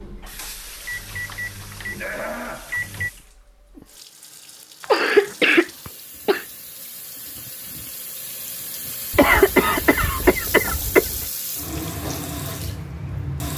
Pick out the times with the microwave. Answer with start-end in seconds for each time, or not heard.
0.0-3.1.